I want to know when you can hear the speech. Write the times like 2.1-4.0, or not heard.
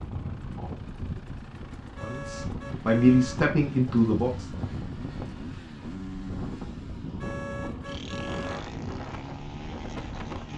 2.0-4.5.